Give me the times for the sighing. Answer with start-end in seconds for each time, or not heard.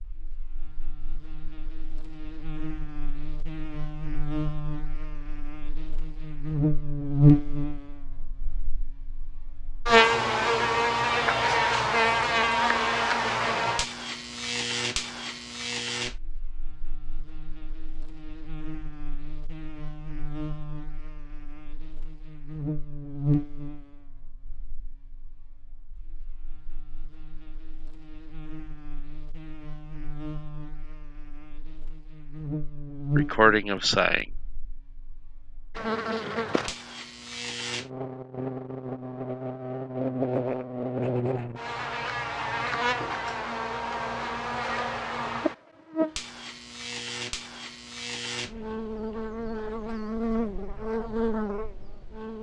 33.1-34.2.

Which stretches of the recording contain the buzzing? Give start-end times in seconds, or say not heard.
0.0-52.3.